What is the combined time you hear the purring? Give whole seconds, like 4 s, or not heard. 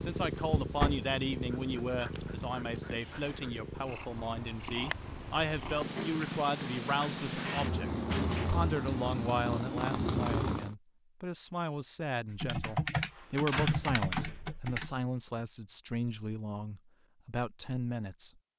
11 s.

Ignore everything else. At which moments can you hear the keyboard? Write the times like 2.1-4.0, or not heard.
12.3-15.4.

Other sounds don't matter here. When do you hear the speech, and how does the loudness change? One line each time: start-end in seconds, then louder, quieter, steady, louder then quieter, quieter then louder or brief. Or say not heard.
0.1-18.3 steady.